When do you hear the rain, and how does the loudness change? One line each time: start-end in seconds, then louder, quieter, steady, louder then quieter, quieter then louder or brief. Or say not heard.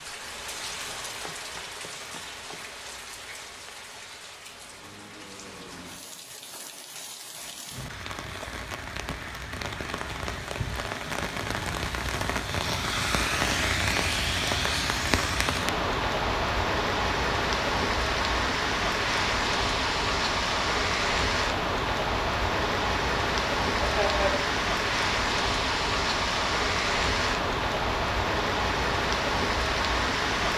0.0-30.5 louder.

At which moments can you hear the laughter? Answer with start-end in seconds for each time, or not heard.
23.6-24.4.